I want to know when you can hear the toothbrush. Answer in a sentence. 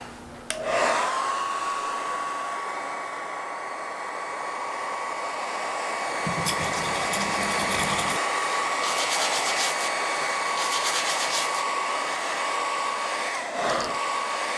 You can hear the toothbrush from 6.2 to 11.7 s.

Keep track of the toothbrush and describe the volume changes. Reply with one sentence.
The volume of the toothbrush stays about the same.